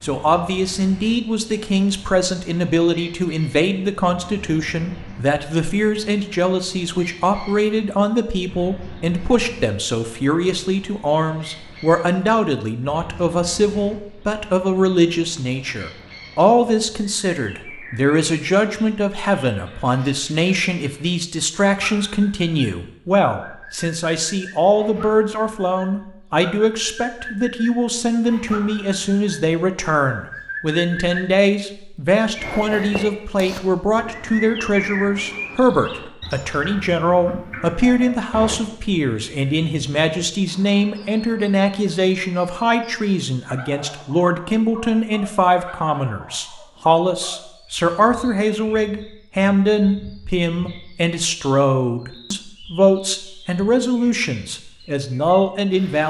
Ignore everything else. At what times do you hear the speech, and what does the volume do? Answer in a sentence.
The speech can be heard from 0.0 to 56.0 s, at a steady volume.